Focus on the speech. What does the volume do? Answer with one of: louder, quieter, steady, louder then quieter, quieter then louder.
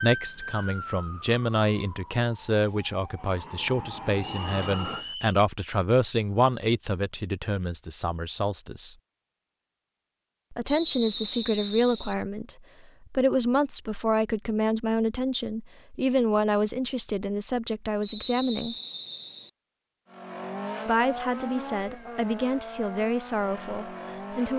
steady.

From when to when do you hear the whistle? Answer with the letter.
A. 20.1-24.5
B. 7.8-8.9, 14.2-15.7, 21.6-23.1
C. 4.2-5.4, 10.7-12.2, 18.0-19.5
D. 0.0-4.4
C.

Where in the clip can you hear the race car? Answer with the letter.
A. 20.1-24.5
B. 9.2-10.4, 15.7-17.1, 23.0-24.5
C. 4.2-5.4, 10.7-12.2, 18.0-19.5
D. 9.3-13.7
A.